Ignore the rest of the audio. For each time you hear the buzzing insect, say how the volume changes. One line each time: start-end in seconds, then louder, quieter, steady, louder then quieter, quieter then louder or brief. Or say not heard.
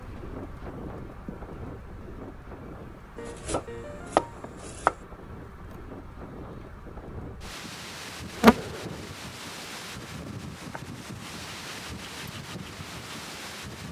0.0-13.8 louder then quieter.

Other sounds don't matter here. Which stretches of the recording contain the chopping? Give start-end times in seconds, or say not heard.
3.1-5.0.